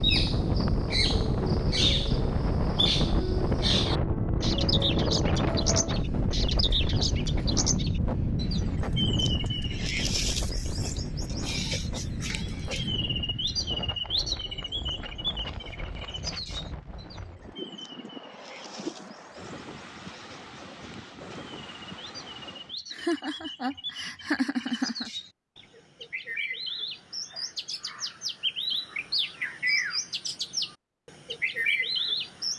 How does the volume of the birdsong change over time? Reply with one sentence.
The loudness of the birdsong goes down, then up.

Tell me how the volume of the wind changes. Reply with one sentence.
The volume of the wind goes down.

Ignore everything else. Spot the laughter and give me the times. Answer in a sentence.
You can hear the laughter from 22.9 to 25.1 s.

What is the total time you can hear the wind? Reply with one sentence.
The wind can be heard for 23 seconds in total.